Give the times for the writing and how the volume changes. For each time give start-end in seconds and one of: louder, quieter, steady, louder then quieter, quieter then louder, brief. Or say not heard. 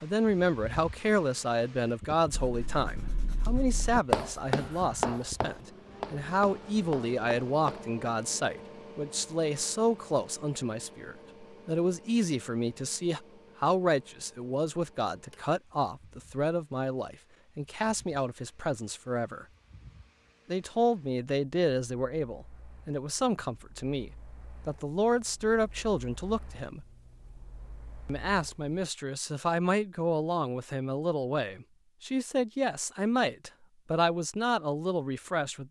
2.3-7.8 louder then quieter.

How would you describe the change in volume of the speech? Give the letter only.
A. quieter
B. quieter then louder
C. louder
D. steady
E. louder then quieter
D.